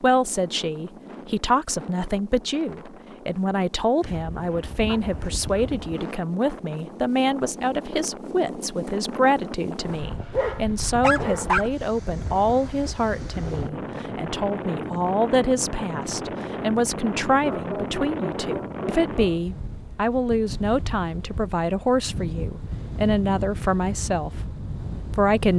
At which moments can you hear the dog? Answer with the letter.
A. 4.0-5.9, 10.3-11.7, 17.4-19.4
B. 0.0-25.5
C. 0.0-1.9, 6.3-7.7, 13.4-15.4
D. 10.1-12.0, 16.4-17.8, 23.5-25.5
A.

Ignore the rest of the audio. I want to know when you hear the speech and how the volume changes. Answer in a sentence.
You can hear the speech from 0.0 to 25.5 s, at a steady volume.